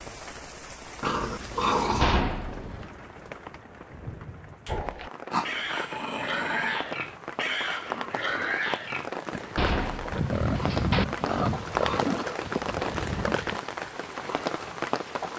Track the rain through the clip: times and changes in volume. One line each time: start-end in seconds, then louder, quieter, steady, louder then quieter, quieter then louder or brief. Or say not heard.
0.0-15.3 louder.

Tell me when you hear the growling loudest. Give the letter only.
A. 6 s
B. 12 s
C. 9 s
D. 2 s
D.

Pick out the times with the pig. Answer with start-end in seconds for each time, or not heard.
4.7-13.6.